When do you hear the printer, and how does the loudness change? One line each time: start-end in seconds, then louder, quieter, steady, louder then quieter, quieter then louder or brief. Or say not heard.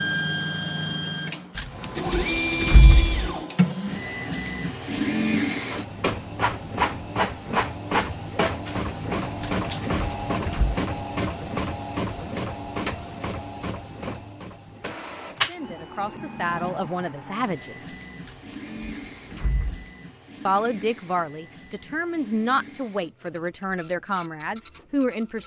0.0-25.4 quieter.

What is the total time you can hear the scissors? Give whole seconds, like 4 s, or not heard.
5 s.